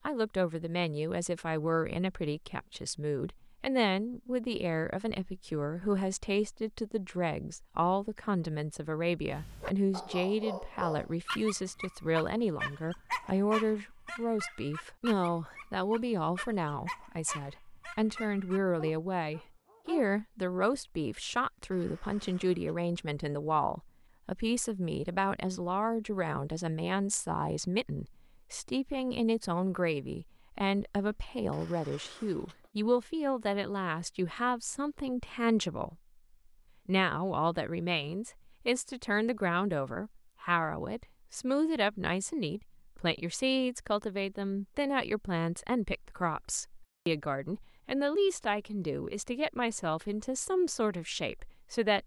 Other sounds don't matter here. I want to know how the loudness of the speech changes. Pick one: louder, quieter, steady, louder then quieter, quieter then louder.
steady.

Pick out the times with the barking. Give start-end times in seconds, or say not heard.
9.2-20.1.